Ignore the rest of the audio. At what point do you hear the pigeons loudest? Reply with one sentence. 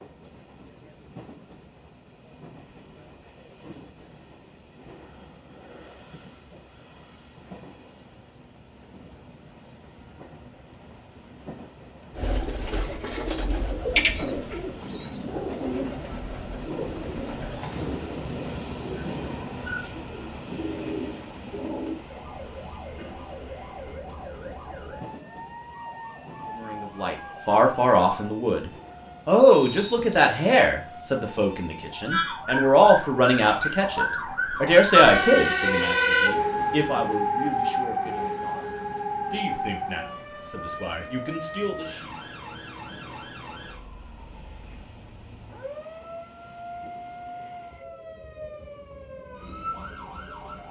The volume of the pigeons peaks at 14 seconds.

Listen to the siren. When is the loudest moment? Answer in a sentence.
The volume of the siren peaks at 35 seconds.